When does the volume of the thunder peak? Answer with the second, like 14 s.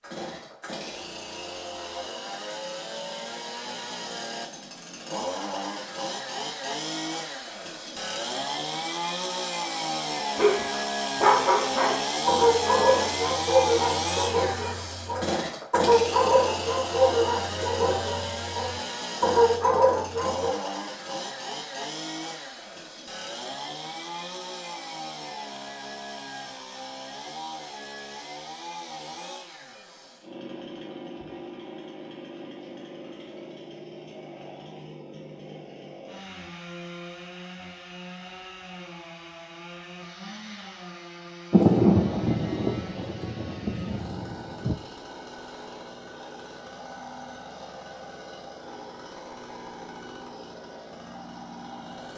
42 s.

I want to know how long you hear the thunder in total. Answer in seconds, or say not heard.
3 s.